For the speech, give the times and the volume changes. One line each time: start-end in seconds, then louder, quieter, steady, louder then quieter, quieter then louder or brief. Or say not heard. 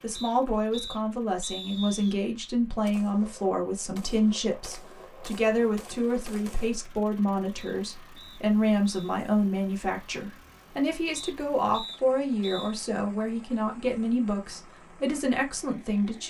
0.0-16.2 steady.